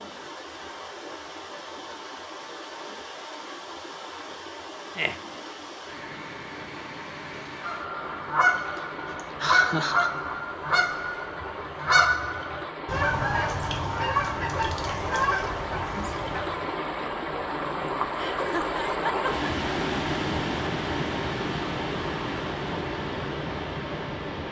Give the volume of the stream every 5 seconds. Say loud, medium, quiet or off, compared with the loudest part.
medium, medium, medium, loud, loud.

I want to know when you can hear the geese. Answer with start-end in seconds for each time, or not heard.
7.6-16.8.